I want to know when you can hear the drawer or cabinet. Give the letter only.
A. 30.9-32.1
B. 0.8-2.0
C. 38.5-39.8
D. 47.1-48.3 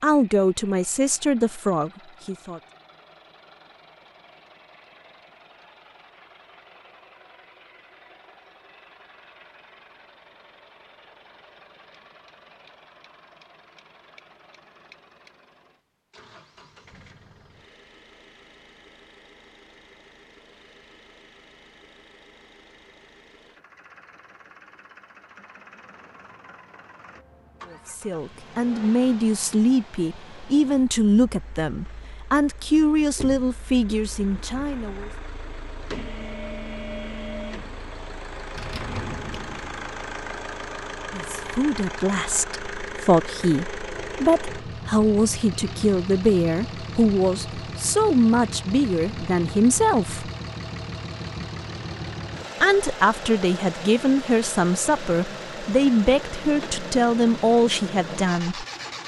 C.